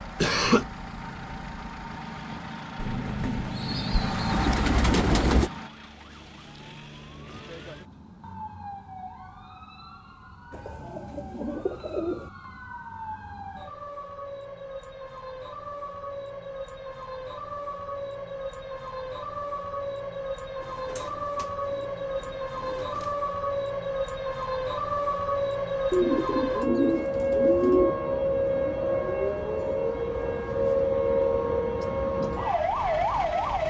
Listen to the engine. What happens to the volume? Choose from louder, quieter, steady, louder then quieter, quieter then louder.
louder.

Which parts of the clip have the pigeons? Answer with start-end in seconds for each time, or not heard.
2.8-5.5, 10.5-12.3, 20.6-23.1, 25.9-27.9.